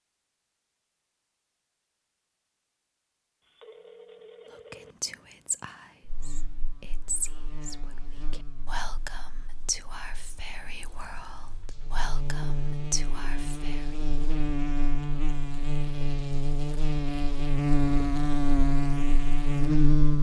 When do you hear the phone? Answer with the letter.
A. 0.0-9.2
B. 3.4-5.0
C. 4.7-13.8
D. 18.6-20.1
B.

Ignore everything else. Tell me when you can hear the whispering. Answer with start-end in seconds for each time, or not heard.
4.7-13.8.